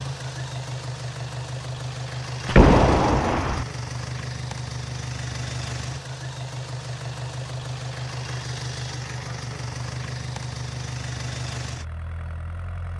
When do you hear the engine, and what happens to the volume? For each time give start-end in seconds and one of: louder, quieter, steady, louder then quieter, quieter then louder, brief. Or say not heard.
0.0-12.9 steady.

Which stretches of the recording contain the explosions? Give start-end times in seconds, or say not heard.
2.5-3.6.